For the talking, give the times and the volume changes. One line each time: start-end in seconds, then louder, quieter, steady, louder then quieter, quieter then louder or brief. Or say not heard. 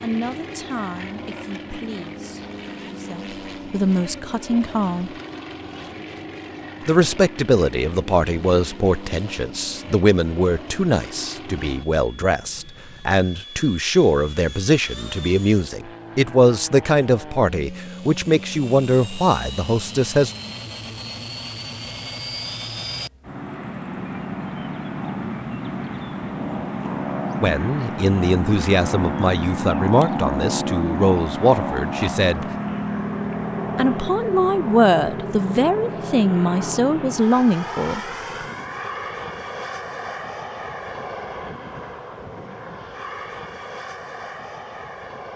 0.0-5.1 quieter then louder
6.8-20.3 steady
27.4-32.5 steady
33.8-38.0 steady.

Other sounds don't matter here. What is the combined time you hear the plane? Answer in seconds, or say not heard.
45 s.